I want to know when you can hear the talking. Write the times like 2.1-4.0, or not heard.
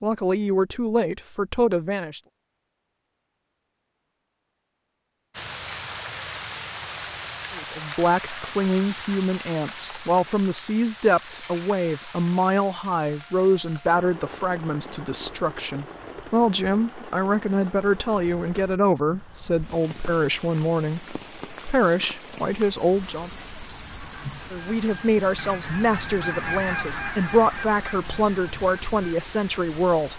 0.0-2.2, 7.5-23.3, 24.5-30.1.